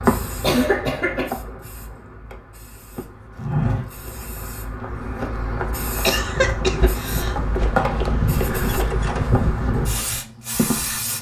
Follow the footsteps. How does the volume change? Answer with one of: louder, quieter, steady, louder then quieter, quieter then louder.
quieter then louder.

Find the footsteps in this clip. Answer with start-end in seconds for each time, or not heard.
3.0-11.0.